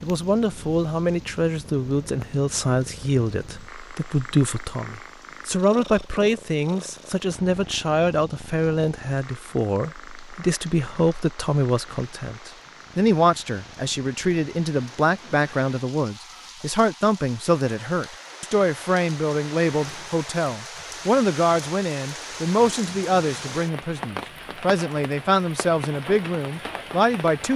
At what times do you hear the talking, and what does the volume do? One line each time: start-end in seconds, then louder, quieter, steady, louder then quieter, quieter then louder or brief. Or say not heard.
0.0-27.5 steady.